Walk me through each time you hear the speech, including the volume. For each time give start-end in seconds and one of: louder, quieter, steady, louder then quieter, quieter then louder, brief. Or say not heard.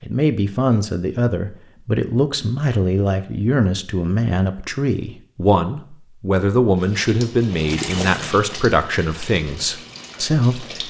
0.0-10.8 steady.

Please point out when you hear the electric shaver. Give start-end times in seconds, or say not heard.
not heard.